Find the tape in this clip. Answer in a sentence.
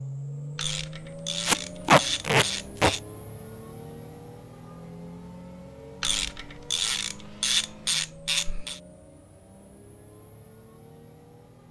The tape can be heard from 1.4 to 3.0 s.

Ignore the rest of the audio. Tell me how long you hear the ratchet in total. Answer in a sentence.
The ratchet can be heard for 5 seconds in total.